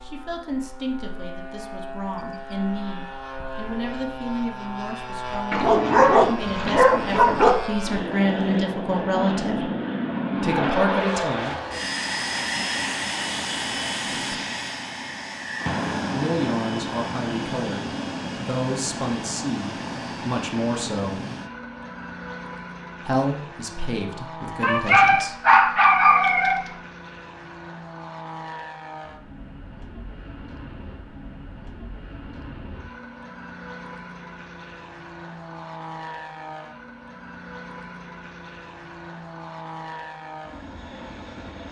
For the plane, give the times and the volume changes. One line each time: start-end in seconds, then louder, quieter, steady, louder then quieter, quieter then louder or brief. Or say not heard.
0.0-41.6 louder then quieter.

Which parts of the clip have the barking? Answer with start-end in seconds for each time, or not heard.
5.5-7.5, 24.6-26.7.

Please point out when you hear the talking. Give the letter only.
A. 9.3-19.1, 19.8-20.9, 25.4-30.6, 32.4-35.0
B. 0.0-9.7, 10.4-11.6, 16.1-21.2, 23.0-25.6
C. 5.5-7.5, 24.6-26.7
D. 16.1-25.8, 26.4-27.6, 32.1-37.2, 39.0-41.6
B.